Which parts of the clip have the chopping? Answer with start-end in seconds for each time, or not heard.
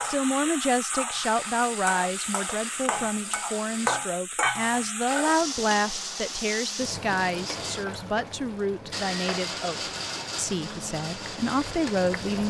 not heard.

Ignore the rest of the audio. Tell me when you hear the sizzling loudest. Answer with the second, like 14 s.
4 s.